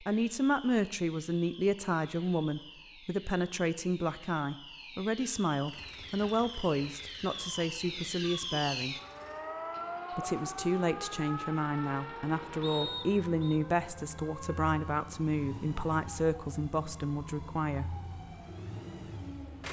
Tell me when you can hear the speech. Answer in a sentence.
The speech can be heard from 0.0 to 8.9 s and from 10.2 to 17.9 s.